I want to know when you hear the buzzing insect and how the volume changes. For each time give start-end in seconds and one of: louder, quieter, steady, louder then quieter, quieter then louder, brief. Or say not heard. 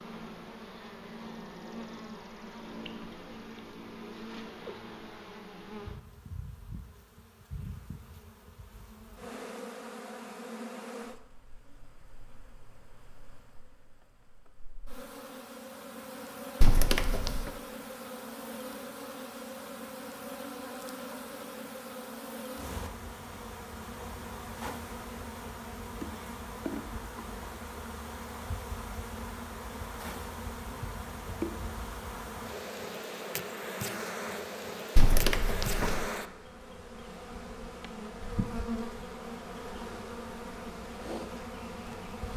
0.0-42.3 louder.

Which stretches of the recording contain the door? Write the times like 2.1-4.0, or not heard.
16.6-17.5, 35.0-36.0.